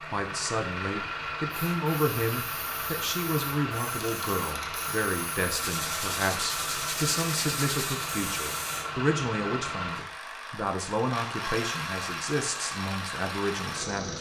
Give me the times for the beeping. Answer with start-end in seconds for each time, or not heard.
not heard.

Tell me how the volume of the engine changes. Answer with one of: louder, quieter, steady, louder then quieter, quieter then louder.
steady.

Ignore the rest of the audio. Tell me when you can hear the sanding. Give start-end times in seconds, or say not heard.
5.5-8.1.